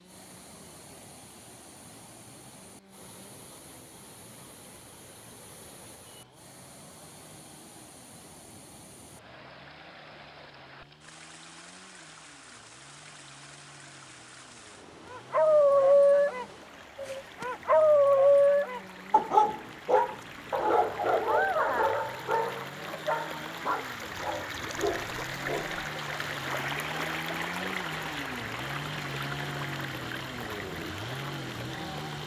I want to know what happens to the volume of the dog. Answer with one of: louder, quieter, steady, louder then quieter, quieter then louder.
quieter.